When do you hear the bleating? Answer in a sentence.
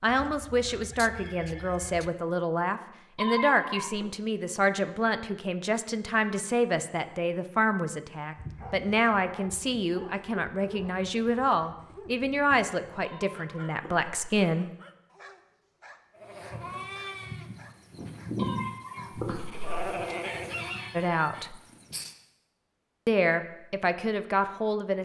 The bleating can be heard from 16.1 to 22.1 s.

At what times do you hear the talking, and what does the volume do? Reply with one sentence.
You can hear the talking from 0.0 to 14.7 s, at a steady volume; briefly from 20.9 to 21.6 s; and briefly from 23.1 to 25.0 s.